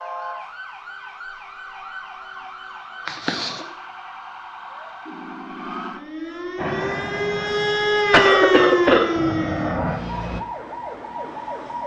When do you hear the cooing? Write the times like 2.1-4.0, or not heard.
not heard.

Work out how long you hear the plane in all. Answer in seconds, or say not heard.
4 s.